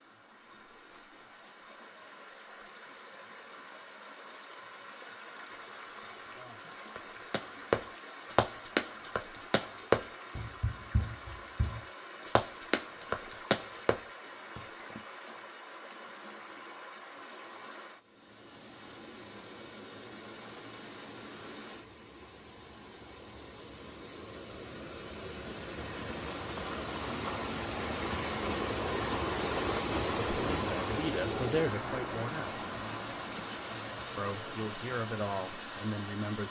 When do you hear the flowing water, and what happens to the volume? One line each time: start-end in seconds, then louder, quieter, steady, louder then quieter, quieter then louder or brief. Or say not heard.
0.0-36.4 louder.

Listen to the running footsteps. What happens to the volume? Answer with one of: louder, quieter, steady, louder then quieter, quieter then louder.
quieter then louder.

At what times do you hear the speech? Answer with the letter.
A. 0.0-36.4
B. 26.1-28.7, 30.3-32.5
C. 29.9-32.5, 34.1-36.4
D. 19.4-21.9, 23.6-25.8
C.